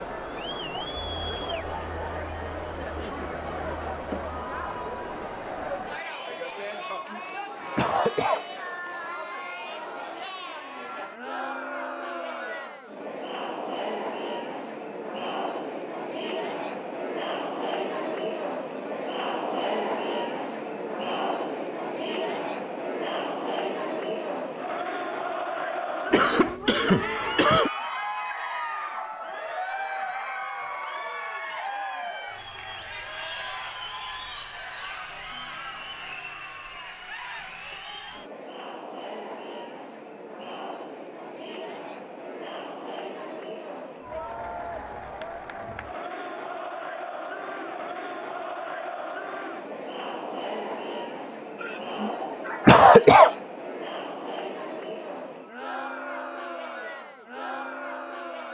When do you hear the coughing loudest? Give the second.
53 s.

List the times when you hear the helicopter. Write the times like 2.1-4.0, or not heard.
not heard.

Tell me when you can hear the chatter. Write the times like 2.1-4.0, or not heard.
0.0-58.5.